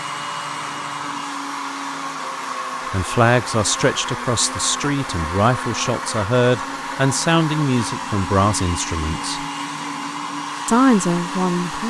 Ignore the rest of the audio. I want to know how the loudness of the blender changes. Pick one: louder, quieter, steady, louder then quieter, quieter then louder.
steady.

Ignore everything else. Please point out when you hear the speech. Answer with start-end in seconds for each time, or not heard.
2.9-9.4, 10.7-11.8.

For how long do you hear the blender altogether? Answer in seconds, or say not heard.
12 s.